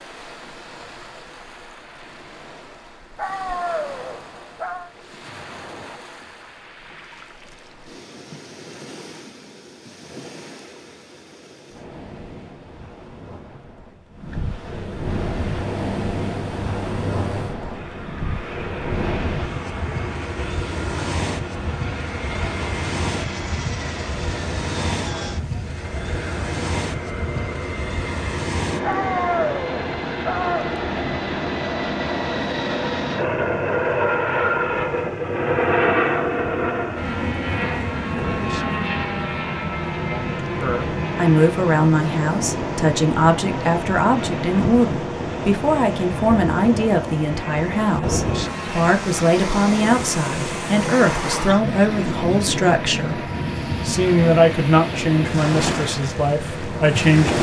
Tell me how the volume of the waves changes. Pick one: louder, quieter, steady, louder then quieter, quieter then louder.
louder.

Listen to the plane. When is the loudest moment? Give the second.
36 s.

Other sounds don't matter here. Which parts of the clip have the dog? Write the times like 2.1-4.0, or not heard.
3.1-4.9, 28.8-30.8.